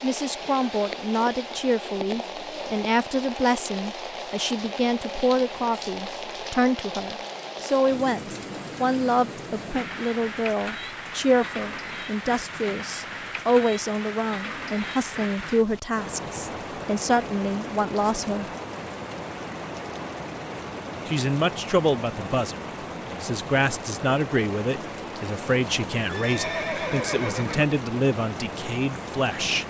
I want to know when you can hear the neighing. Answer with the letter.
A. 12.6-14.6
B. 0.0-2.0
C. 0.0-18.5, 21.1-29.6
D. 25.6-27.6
D.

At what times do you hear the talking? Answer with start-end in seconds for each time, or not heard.
0.0-18.5, 21.1-29.6.